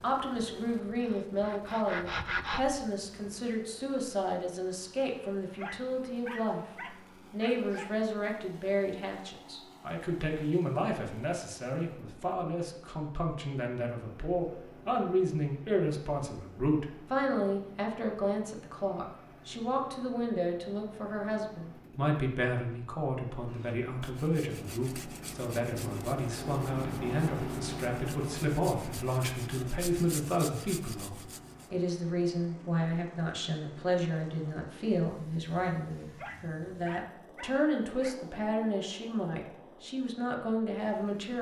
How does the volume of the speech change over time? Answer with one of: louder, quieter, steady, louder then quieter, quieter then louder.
steady.